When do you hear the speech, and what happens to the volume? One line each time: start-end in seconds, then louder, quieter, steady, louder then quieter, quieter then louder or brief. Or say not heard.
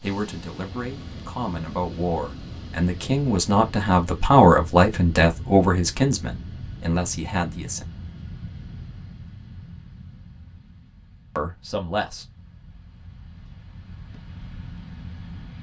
0.0-7.8 louder then quieter
11.3-12.2 brief.